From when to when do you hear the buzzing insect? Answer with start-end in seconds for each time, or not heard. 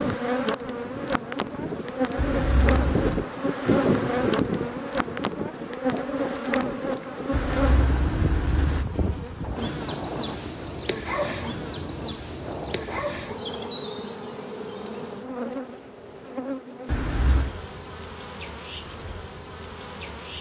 0.0-20.3.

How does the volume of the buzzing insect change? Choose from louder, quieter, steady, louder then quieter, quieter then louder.
quieter.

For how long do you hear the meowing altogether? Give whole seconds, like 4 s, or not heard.
3 s.